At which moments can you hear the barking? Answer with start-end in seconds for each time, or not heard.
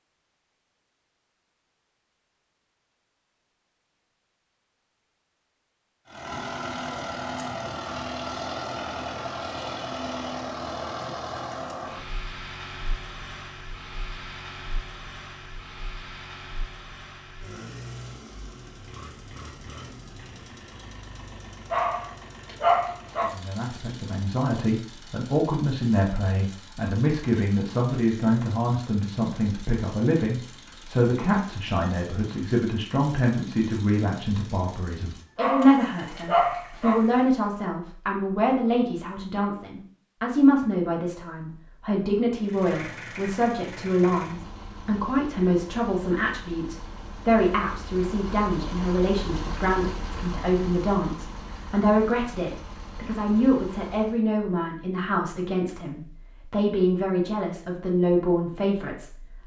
21.7-23.3, 35.4-37.0.